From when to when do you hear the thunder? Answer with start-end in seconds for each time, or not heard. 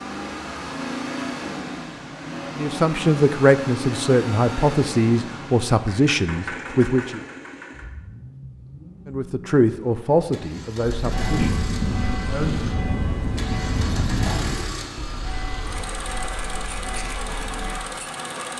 11.1-14.6.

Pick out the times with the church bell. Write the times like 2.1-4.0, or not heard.
10.9-17.8.